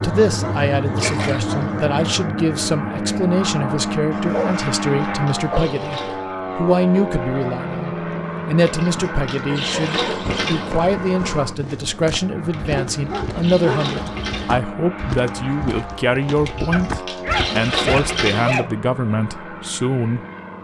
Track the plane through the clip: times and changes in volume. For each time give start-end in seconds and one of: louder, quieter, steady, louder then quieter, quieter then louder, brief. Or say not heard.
0.0-20.5 quieter.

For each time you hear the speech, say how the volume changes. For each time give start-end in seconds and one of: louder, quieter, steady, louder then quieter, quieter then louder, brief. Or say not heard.
0.0-20.2 steady.